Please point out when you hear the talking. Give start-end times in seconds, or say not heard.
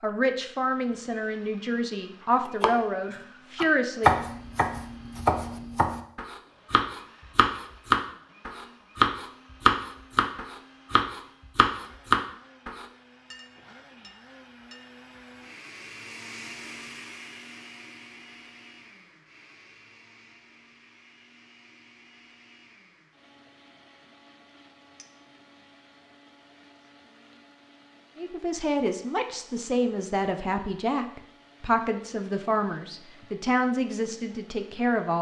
0.0-4.2, 28.1-35.1.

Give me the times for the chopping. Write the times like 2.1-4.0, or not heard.
2.5-12.8.